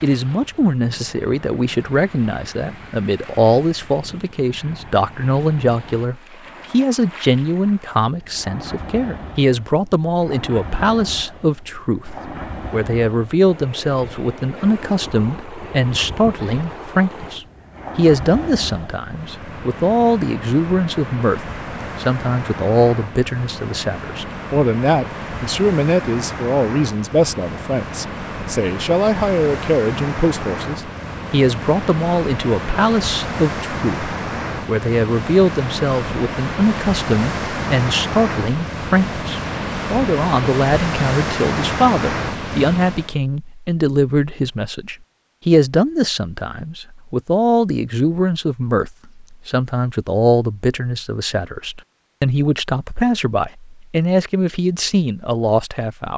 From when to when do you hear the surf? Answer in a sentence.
You can hear the surf from 0.0 to 43.1 s.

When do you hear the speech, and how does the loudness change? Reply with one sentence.
The speech can be heard from 0.0 to 56.1 s, at a steady volume.